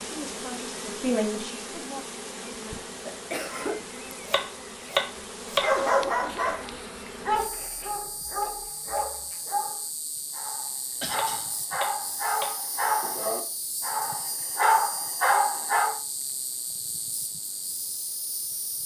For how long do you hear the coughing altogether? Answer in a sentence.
You can hear the coughing for 2 seconds altogether.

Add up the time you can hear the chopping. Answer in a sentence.
The chopping can be heard for 3 seconds in total.